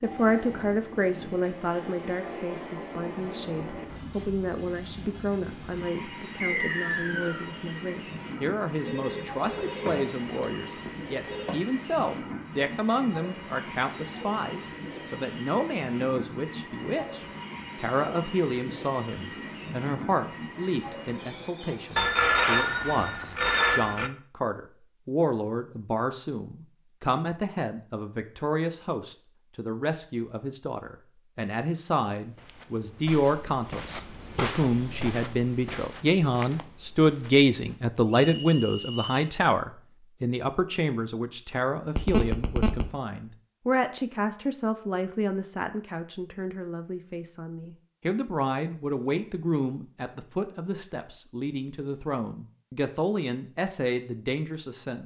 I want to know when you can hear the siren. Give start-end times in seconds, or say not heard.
not heard.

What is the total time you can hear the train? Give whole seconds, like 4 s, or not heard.
22 s.